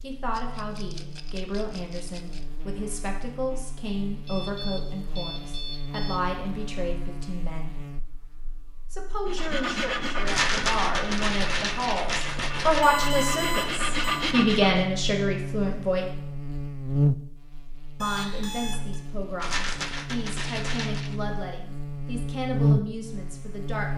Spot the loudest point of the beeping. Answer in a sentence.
The volume of the beeping peaks at 13 seconds.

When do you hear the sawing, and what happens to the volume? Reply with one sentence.
You can hear the sawing from 9.2 to 14.8 s, getting quieter then louder.